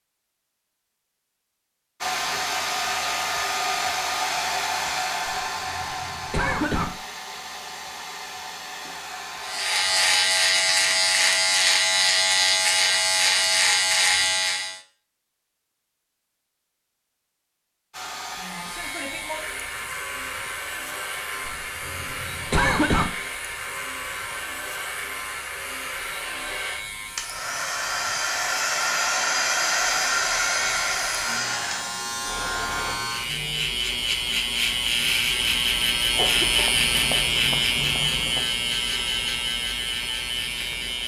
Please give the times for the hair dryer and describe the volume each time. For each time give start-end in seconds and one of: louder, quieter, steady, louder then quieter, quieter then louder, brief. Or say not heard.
2.0-10.2 quieter
17.9-33.0 louder.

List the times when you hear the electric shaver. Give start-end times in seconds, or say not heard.
9.4-14.8, 18.5-41.0.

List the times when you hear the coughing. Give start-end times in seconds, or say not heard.
5.2-6.9, 21.4-23.1, 36.1-38.5.